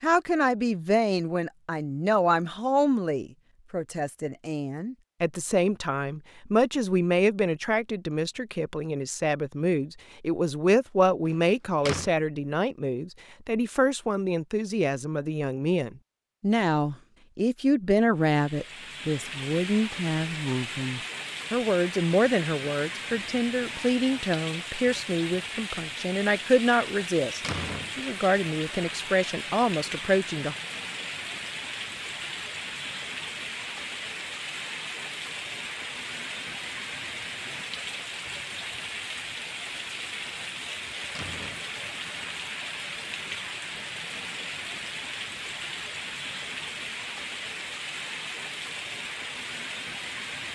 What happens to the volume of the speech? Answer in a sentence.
The loudness of the speech stays about the same.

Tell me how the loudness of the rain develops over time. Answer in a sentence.
The volume of the rain stays about the same.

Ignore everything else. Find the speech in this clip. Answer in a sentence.
The speech can be heard from 0.0 to 30.6 s.